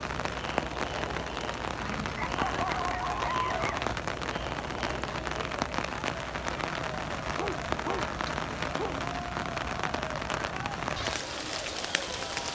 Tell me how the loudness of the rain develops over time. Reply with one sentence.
The loudness of the rain stays about the same.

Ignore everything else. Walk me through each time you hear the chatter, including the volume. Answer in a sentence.
The chatter can be heard from 0.0 to 12.5 s, at a steady volume.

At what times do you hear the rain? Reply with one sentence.
You can hear the rain from 0.0 to 12.5 s.